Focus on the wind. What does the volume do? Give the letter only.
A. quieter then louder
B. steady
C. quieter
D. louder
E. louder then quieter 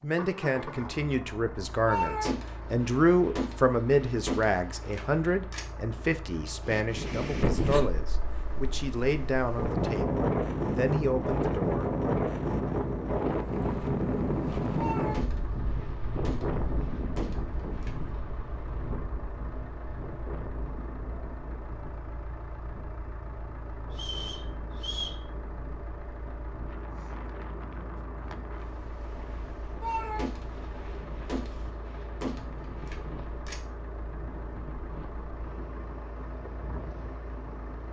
C.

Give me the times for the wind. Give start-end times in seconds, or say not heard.
6.7-37.8.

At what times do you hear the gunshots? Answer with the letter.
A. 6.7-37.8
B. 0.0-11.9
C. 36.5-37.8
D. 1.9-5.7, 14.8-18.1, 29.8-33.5
D.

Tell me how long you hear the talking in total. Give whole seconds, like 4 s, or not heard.
12 s.